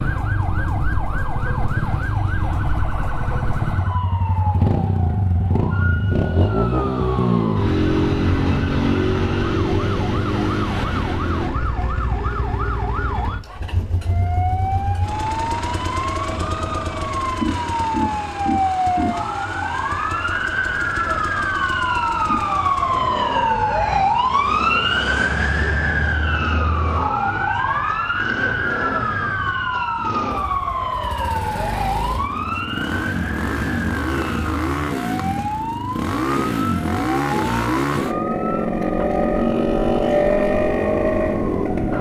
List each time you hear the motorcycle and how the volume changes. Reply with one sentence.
You can hear the motorcycle from 0.0 to 41.9 s, getting quieter then louder.